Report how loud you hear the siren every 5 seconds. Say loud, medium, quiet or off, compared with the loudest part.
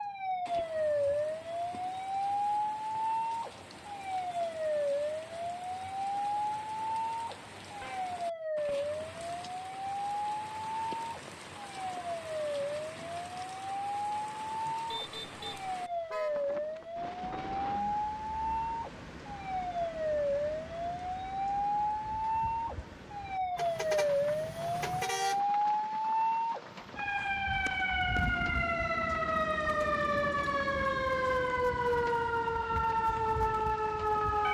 loud, medium, medium, medium, loud, loud, loud.